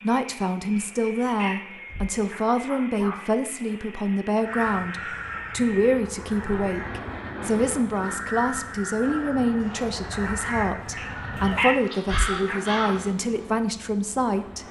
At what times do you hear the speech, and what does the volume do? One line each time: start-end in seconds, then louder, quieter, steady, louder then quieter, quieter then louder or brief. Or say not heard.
0.0-14.6 steady.